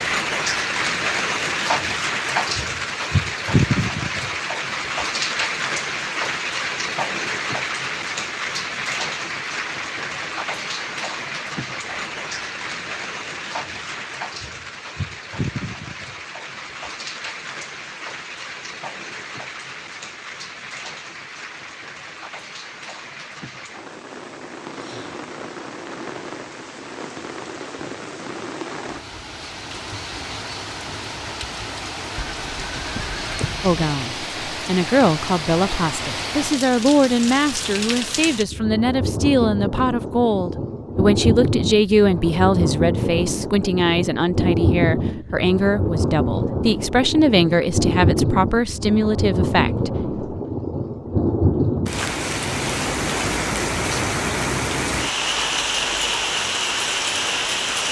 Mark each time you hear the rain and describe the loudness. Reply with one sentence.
You can hear the rain from 0.0 to 57.8 s, getting quieter then louder.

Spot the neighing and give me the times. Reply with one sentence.
The neighing can be heard from 32.2 to 33.8 s.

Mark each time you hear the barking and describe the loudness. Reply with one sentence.
The barking can't be heard in this clip.